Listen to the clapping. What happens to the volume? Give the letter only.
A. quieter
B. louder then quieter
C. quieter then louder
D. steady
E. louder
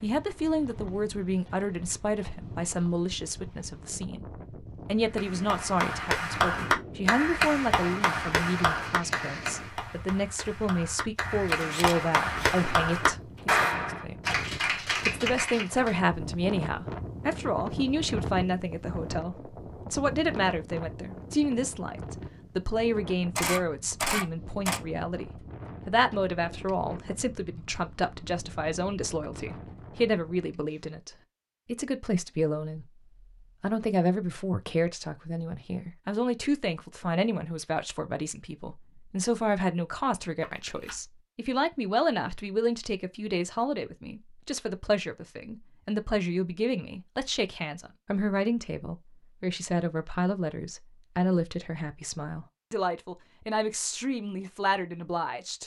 C.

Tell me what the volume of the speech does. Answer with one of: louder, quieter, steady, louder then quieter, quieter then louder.
steady.